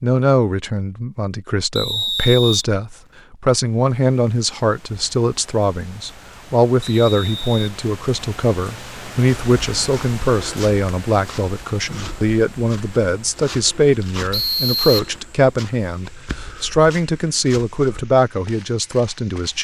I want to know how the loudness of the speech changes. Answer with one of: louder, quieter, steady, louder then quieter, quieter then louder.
steady.